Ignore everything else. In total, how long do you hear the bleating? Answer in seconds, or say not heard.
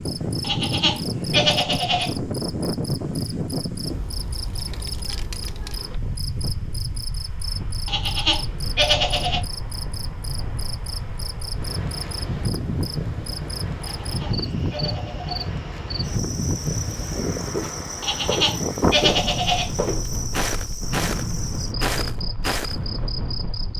7 s.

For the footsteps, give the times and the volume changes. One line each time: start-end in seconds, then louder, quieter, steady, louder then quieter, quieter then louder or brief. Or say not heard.
17.5-22.8 steady.